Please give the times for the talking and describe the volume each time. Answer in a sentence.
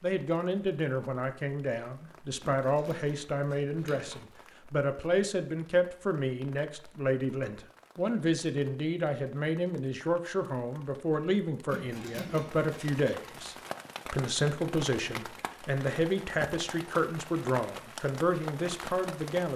You can hear the talking from 0.0 to 19.5 s, at a steady volume.